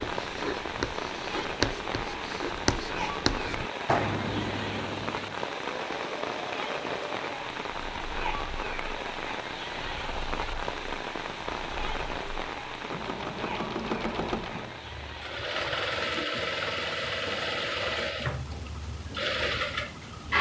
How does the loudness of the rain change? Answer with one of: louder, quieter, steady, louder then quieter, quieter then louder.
quieter.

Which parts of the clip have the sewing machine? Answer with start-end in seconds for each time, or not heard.
5.3-20.3.